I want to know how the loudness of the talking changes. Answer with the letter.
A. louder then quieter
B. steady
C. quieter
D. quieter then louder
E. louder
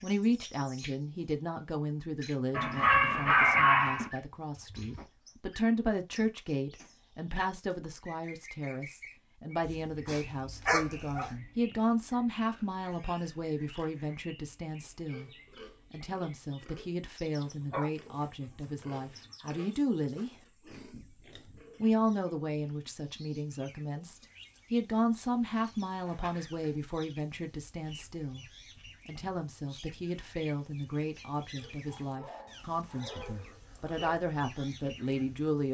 B.